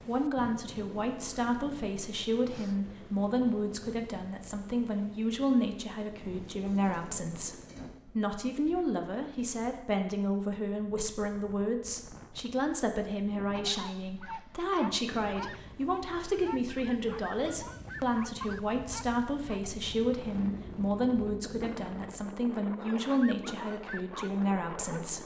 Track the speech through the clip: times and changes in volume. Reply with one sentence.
The speech can be heard from 0.1 to 25.2 s, at a steady volume.